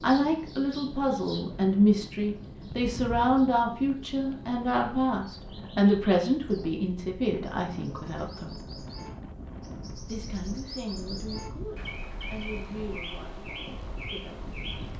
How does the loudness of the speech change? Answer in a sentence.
The loudness of the speech goes down.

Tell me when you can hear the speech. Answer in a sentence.
You can hear the speech from 0.0 to 8.6 s and from 10.1 to 14.5 s.